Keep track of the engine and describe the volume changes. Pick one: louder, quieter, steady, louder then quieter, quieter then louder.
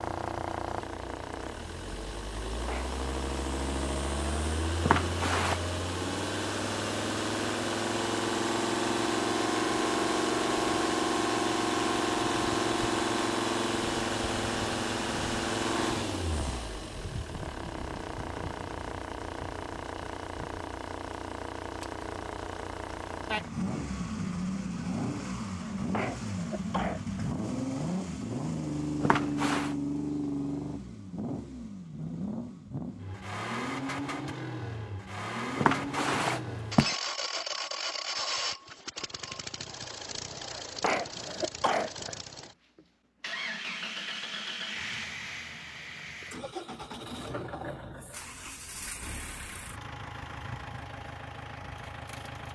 quieter.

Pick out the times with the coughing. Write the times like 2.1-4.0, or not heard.
2.5-3.0, 25.6-27.3, 40.5-42.2.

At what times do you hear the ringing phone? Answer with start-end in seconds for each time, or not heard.
4.8-5.6, 29.0-29.8, 35.5-37.0.